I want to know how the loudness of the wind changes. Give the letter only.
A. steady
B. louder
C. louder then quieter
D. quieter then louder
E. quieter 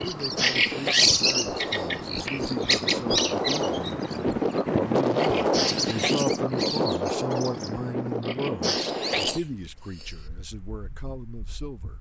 C.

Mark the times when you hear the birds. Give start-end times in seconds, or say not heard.
0.0-9.3.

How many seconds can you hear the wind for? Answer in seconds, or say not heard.
12 s.